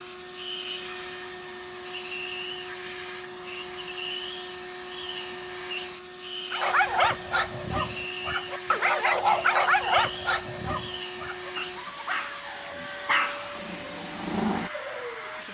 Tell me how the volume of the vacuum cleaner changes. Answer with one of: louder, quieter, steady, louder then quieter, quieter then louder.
steady.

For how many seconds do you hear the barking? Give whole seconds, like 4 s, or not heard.
8 s.